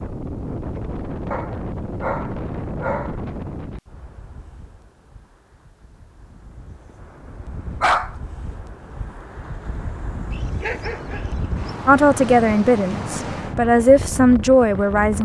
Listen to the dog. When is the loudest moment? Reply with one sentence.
The volume of the dog peaks at 8 seconds.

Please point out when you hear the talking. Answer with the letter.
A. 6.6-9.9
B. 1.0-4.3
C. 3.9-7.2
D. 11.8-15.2
D.